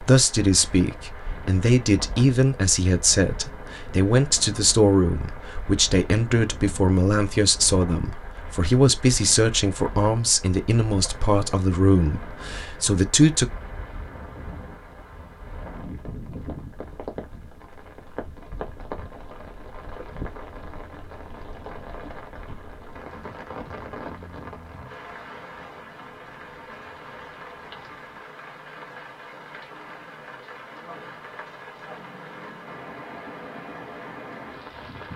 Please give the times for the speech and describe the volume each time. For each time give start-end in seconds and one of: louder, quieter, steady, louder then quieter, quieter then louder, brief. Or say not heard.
0.0-13.4 steady.